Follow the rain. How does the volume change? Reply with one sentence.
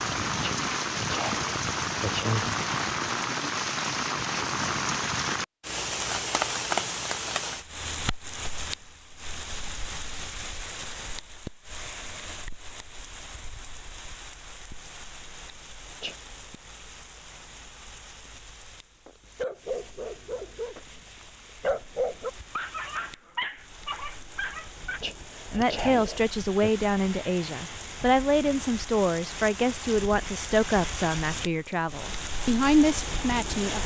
The loudness of the rain goes down, then up.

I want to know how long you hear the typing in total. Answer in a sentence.
The typing can't be heard in this clip.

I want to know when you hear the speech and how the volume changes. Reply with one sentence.
The speech can be heard from 25.5 to 33.8 s, at a steady volume.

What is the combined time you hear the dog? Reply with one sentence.
The dog can be heard for 6 seconds in total.